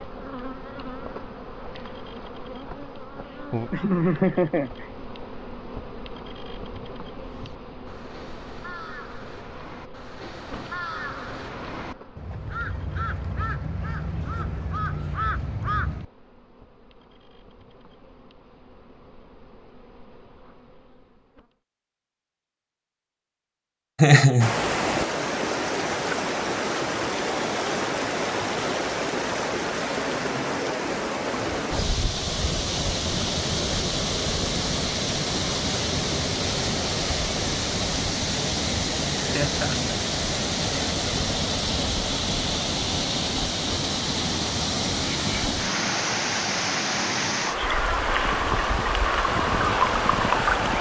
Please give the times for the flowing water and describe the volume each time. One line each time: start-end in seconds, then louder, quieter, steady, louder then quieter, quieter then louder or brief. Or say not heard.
24.4-50.7 steady.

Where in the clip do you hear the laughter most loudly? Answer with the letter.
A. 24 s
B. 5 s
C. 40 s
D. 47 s
A.